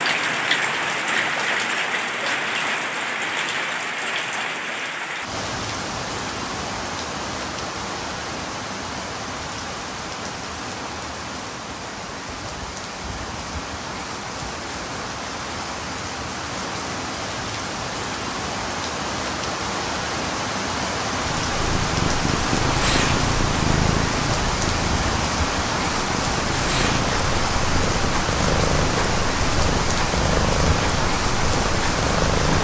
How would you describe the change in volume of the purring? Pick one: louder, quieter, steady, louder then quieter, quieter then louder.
steady.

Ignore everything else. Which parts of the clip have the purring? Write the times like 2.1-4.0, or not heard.
21.1-32.6.